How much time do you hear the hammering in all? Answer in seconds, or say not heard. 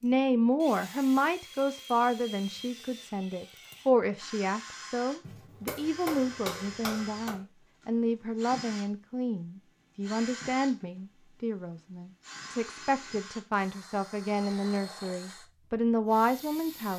2 s.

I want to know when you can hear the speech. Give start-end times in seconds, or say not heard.
0.0-16.9.